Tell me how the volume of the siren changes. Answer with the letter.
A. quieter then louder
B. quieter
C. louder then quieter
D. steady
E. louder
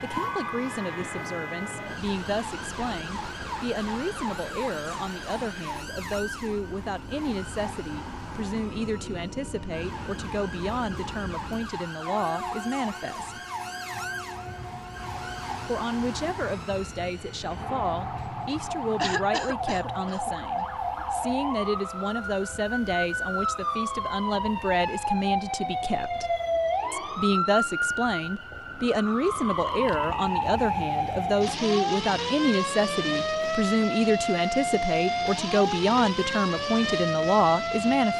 E.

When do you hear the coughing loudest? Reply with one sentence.
The volume of the coughing peaks at 19 seconds.